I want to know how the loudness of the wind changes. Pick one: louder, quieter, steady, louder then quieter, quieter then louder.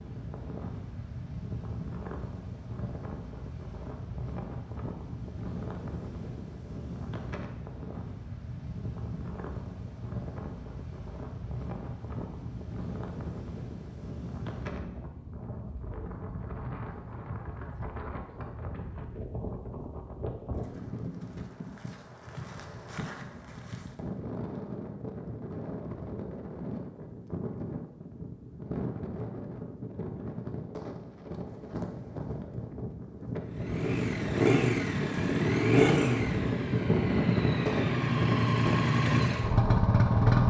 louder.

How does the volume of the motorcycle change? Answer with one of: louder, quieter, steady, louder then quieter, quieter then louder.
quieter then louder.